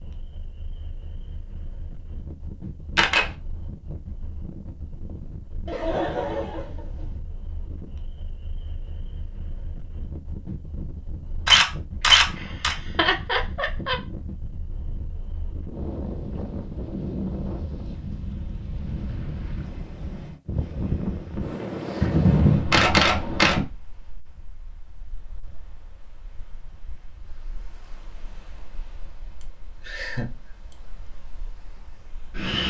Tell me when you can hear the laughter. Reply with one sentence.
The laughter can be heard from 5.7 to 7.2 s, from 12.3 to 13.9 s and from 29.4 to 30.8 s.